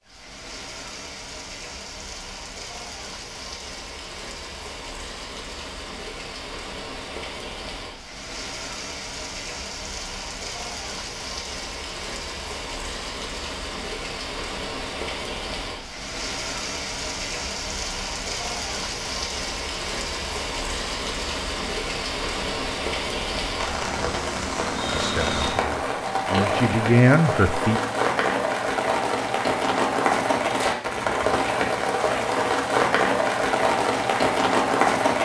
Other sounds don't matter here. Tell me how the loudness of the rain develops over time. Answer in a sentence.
The volume of the rain goes up.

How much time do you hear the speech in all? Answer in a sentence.
The speech can be heard for 3 seconds in total.